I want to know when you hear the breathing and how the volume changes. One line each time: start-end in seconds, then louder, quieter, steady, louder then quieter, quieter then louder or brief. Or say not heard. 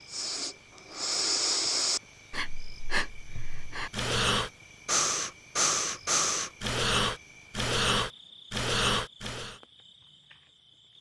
0.1-9.6 quieter then louder.